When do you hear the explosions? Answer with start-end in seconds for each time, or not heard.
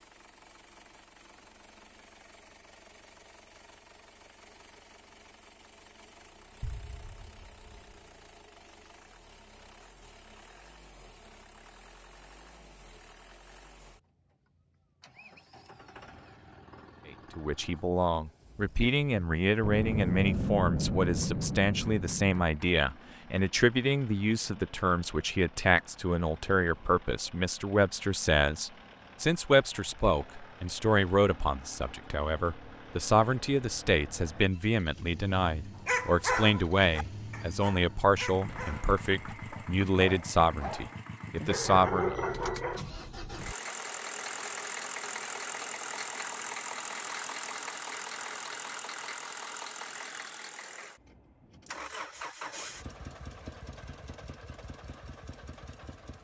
6.6-7.8, 19.6-22.4, 38.5-39.6.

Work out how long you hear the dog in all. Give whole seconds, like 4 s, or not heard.
7 s.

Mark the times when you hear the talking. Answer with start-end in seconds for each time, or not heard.
17.4-42.2.